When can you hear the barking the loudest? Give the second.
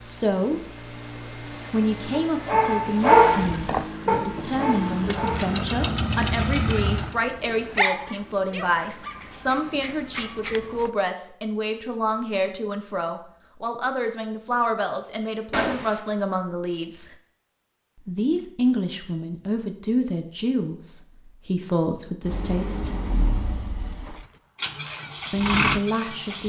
3 s.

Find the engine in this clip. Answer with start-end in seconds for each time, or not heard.
0.0-7.2, 22.2-26.4.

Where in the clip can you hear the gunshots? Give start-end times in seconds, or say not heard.
4.3-6.4, 15.5-16.0.